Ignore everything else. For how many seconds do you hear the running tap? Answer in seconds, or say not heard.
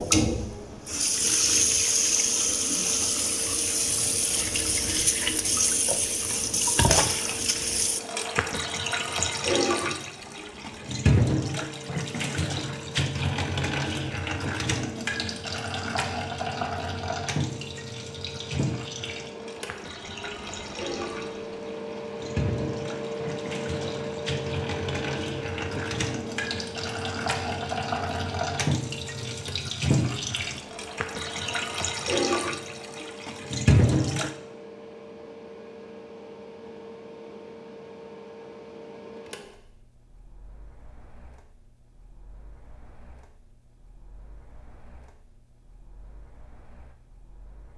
34 s.